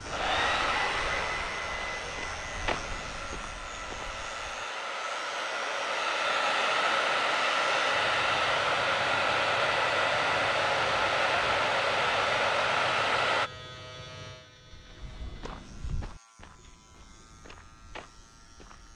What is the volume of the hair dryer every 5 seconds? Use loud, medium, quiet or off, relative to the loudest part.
medium, loud, loud, off.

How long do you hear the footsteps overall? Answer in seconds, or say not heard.
9 s.